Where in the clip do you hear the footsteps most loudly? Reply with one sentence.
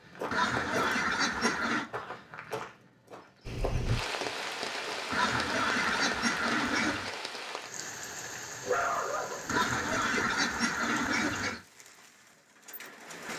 The volume of the footsteps peaks at 1 second.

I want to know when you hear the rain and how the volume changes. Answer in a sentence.
The rain can be heard from 3.5 to 13.3 s, getting quieter.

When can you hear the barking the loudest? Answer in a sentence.
The volume of the barking peaks at 9 seconds.